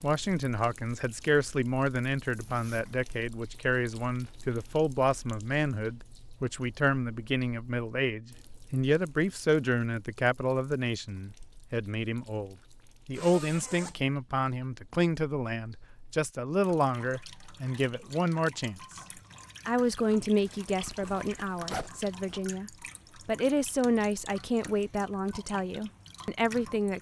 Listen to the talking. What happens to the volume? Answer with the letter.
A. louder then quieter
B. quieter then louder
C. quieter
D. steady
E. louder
D.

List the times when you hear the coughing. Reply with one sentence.
You can't hear the coughing here.